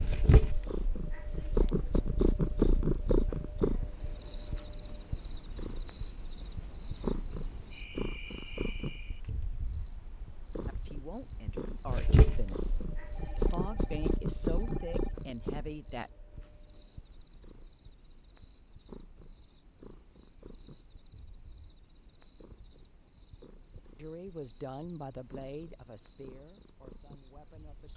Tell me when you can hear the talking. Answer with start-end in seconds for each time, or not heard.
10.7-16.1, 23.9-27.9.